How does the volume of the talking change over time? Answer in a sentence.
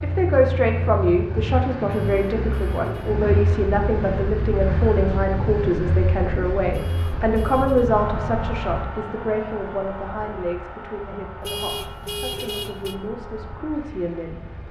The volume of the talking goes down.